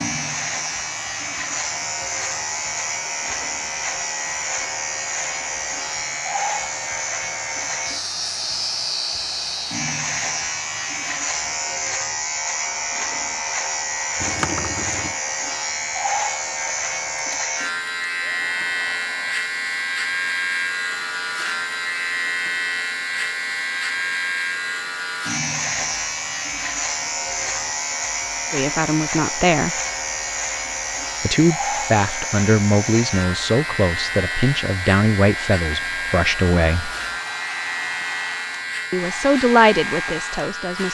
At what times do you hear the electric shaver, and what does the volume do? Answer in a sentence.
The electric shaver can be heard from 0.0 to 40.8 s, at a steady volume.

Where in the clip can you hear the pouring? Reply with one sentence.
You can hear the pouring from 14.2 to 15.2 s.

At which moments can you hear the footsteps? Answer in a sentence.
You can't hear the footsteps here.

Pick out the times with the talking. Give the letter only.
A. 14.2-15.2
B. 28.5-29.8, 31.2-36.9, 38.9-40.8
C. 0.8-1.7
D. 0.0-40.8
B.